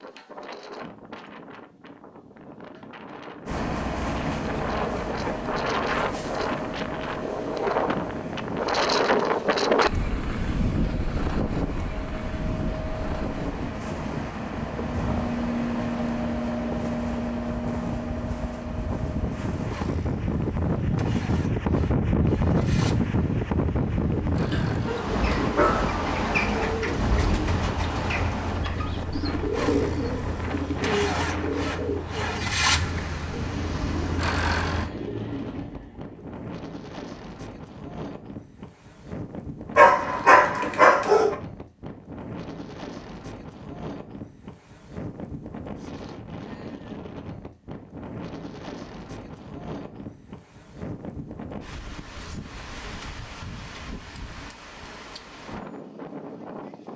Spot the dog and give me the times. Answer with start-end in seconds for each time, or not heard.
24.5-25.9, 39.8-41.4.